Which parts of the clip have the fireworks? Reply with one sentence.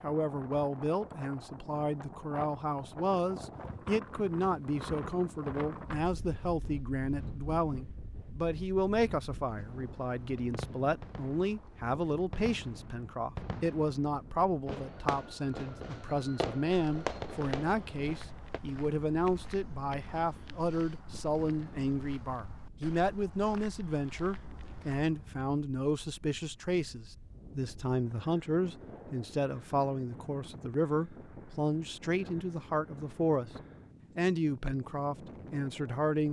The fireworks can be heard from 10.3 to 18.6 s.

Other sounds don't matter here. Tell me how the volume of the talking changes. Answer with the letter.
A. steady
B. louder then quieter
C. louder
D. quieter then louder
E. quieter
A.